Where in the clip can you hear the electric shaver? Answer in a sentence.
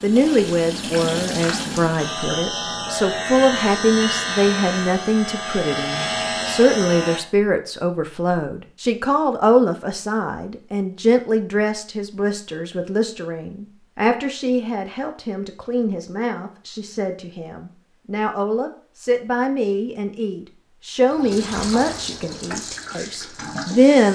You can hear the electric shaver from 1.9 to 7.2 s.